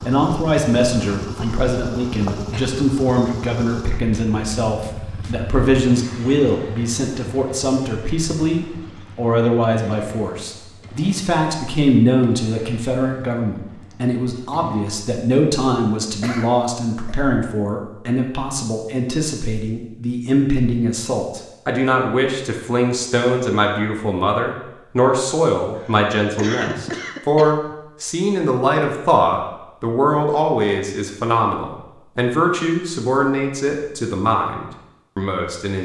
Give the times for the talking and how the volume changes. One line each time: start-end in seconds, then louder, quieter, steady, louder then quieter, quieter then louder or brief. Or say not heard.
0.1-35.7 steady.